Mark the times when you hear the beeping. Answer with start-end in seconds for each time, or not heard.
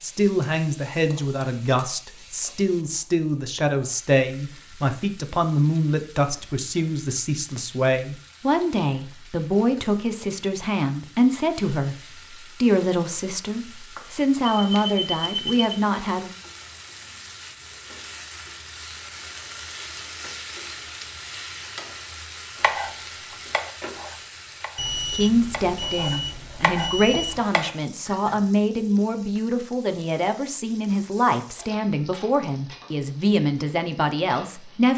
14.5-15.8, 24.8-27.4.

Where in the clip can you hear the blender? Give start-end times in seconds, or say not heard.
not heard.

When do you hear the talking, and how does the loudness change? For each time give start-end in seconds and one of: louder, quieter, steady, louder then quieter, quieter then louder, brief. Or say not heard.
0.0-16.3 steady
25.1-34.9 steady.